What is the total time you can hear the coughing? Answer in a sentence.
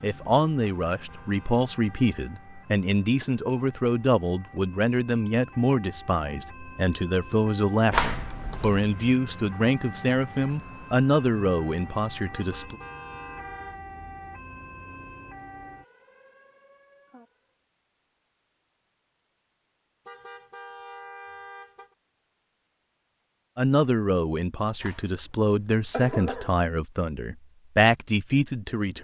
The coughing can be heard for 3 seconds in total.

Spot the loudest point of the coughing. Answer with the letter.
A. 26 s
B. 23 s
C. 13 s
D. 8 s
D.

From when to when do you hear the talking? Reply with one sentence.
You can hear the talking from 0.0 to 12.8 s and from 23.6 to 29.0 s.